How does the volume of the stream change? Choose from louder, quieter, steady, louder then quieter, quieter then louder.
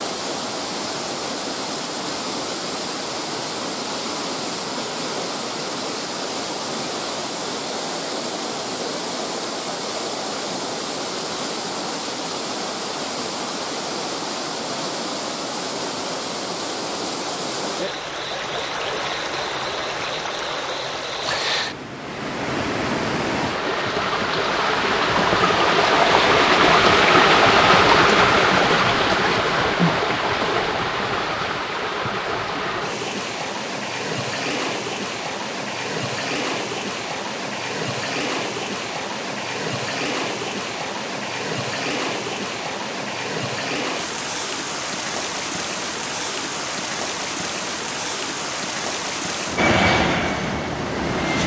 louder then quieter.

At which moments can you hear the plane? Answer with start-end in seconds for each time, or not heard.
49.5-51.4.